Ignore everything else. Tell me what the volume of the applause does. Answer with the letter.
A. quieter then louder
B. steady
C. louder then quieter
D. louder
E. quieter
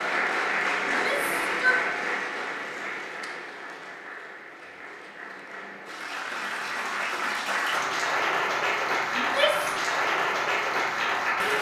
A.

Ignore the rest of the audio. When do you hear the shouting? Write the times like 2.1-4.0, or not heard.
0.8-1.8, 9.2-9.8.